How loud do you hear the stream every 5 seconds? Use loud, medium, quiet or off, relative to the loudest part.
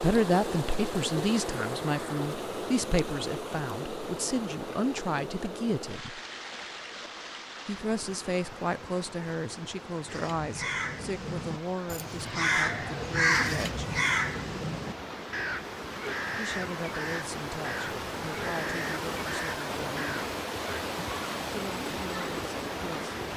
loud, medium, medium, loud, loud.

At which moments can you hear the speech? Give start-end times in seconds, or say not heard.
0.0-6.2, 7.7-13.9, 16.4-20.2, 21.5-23.1.